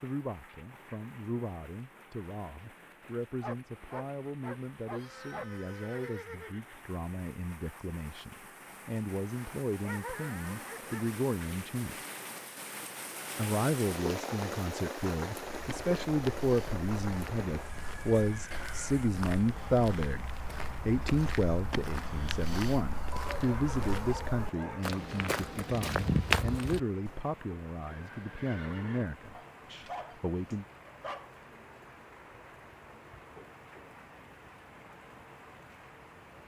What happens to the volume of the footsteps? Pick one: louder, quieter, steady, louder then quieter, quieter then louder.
louder.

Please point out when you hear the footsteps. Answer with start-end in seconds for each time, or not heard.
15.6-27.2.